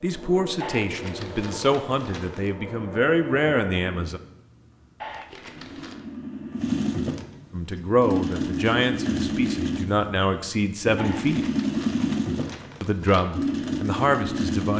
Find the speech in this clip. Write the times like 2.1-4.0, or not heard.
0.0-4.2, 7.5-11.4, 12.8-14.7.